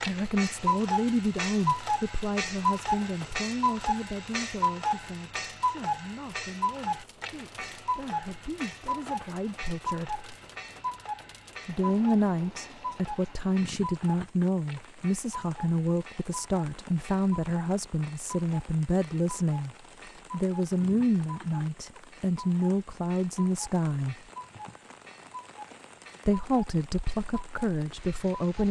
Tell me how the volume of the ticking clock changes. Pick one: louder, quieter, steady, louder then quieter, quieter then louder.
quieter.